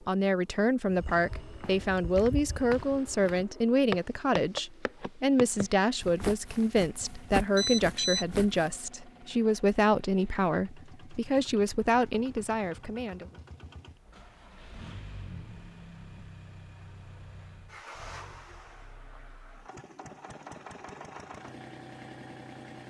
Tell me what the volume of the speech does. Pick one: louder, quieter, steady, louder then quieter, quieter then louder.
steady.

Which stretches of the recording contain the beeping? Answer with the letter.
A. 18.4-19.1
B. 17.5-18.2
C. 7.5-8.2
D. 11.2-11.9
C.